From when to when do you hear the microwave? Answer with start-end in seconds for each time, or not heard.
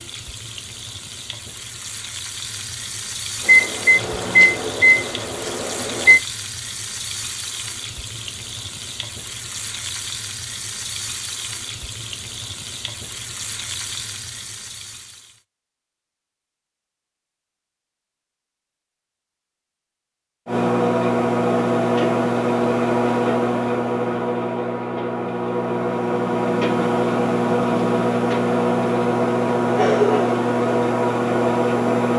3.4-6.2, 20.4-32.1.